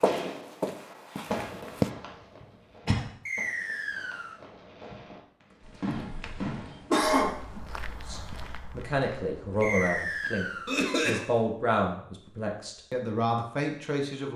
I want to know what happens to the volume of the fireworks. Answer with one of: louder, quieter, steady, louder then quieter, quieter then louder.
quieter then louder.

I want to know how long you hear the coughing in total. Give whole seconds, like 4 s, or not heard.
3 s.